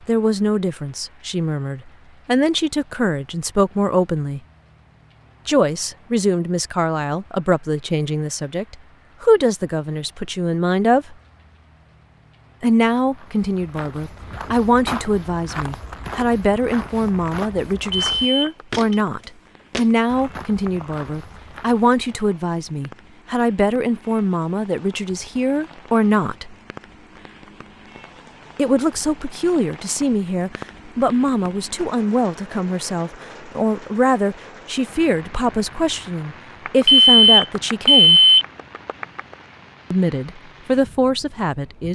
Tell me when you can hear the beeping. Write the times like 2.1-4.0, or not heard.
17.9-18.8, 36.6-39.2.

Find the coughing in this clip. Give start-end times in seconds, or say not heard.
not heard.